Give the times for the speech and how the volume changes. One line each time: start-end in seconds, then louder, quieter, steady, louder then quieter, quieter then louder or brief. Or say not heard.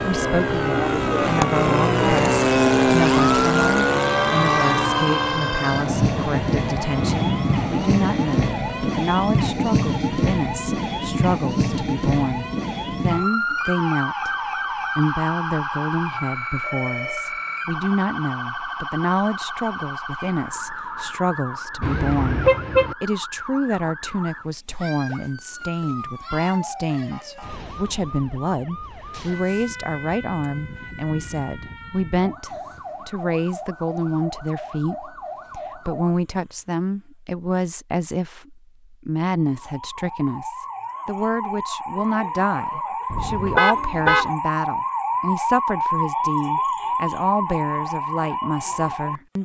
0.0-49.4 steady.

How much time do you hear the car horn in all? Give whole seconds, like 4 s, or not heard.
2 s.